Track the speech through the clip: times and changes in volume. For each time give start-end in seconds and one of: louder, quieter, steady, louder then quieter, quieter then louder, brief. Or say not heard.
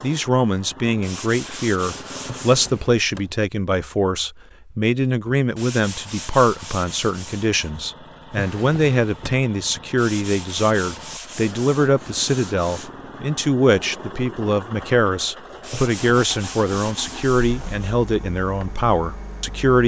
0.0-19.8 steady.